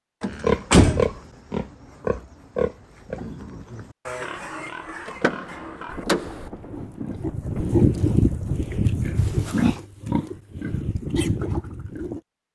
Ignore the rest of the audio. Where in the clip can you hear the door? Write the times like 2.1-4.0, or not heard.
0.2-1.1, 5.0-6.5, 9.2-9.8.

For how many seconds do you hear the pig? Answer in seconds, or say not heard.
12 s.